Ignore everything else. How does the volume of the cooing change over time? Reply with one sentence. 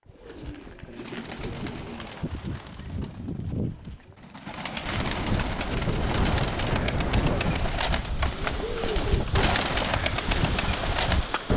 The volume of the cooing goes up.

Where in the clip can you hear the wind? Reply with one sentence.
The wind can be heard from 4.8 to 11.5 s.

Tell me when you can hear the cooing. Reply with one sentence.
You can hear the cooing from 0.1 to 11.4 s.